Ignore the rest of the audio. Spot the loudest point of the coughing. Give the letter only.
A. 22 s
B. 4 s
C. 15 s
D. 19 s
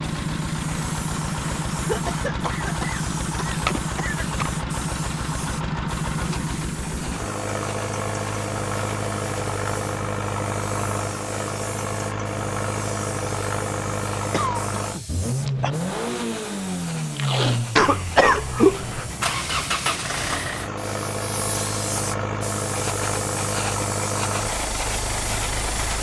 D.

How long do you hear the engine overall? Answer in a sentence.
You can hear the engine for 26 seconds altogether.